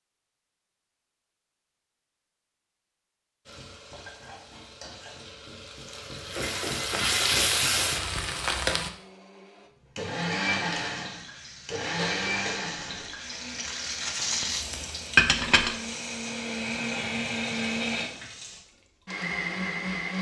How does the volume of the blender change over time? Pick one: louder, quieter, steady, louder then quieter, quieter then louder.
quieter then louder.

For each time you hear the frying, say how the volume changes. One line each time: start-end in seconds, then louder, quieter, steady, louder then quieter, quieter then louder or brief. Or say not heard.
3.5-8.9 louder
10.8-18.6 louder then quieter.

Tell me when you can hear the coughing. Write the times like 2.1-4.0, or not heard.
11.9-13.2.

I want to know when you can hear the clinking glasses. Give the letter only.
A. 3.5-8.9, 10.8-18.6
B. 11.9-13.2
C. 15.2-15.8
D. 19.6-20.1
C.